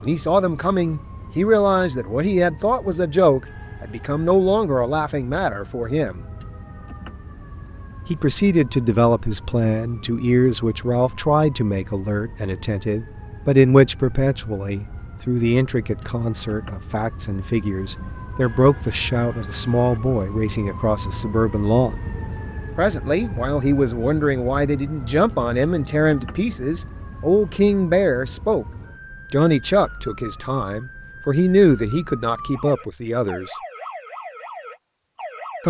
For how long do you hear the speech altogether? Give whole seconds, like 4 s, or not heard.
30 s.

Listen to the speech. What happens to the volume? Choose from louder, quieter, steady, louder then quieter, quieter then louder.
steady.